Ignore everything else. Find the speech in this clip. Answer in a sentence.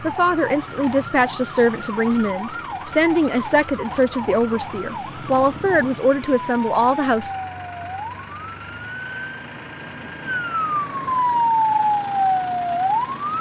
You can hear the speech from 0.0 to 7.3 s.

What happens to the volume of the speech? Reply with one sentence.
The loudness of the speech stays about the same.